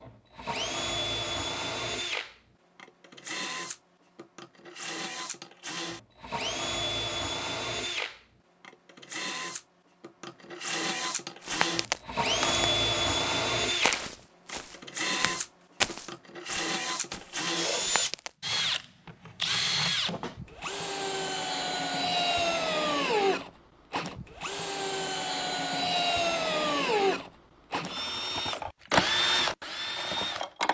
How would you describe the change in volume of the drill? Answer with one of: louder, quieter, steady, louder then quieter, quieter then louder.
louder.